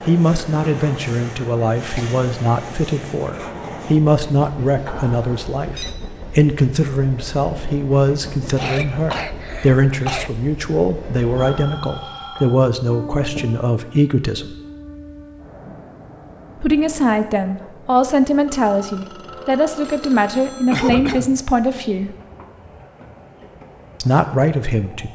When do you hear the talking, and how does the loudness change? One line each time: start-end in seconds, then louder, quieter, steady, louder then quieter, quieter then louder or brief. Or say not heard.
0.1-14.6 steady
16.6-22.1 steady
24.0-25.1 brief.